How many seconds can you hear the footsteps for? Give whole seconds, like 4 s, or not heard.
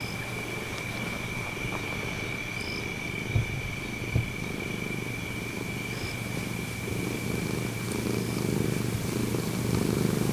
not heard.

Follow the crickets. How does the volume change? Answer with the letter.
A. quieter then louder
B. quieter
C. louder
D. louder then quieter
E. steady
B.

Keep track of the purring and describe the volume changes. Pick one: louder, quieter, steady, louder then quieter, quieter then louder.
louder.